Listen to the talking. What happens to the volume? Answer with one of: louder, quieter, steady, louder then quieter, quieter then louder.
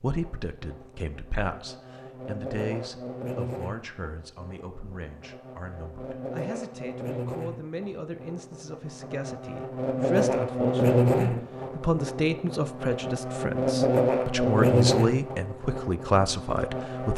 quieter then louder.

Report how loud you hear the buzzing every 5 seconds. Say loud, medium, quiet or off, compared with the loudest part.
quiet, quiet, loud, medium.